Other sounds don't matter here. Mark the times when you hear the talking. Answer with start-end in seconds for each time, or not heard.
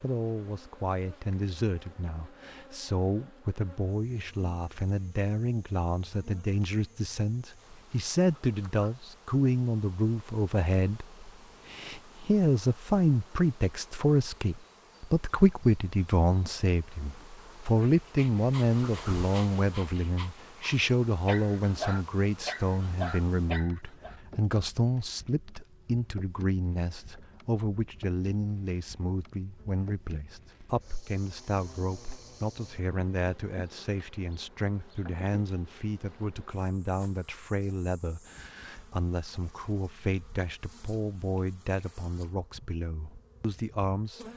0.0-44.2.